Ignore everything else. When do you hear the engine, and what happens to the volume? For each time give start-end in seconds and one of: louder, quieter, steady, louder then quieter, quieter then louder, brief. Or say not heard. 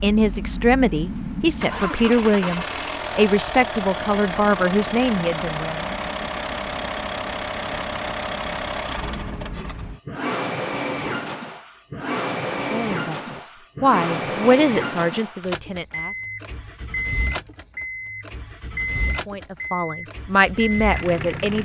0.0-21.5 steady.